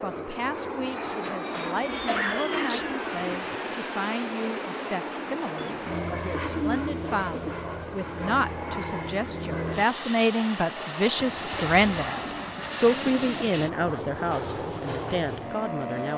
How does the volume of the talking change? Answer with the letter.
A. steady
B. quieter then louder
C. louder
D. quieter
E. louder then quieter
C.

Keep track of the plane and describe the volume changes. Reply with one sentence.
The volume of the plane stays about the same.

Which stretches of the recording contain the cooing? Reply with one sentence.
The cooing can be heard from 1.6 to 3.9 s, from 5.5 to 7.6 s and from 11.2 to 13.7 s.